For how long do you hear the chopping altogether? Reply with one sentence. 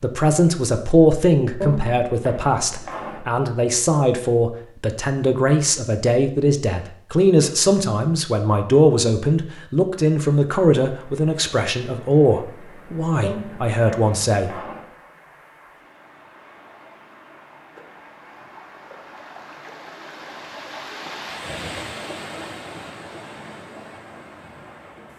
The chopping can be heard for 3 seconds in total.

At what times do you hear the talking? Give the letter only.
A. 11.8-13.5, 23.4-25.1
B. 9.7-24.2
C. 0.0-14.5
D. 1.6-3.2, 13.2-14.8
C.